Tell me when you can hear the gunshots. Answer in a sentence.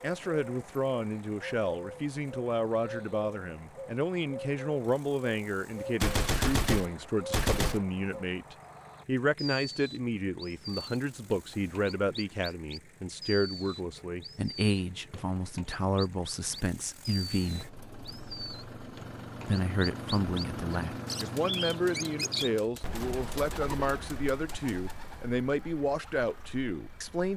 You can hear the gunshots from 6.0 to 7.8 s and from 21.1 to 24.9 s.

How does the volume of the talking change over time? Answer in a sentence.
The loudness of the talking stays about the same.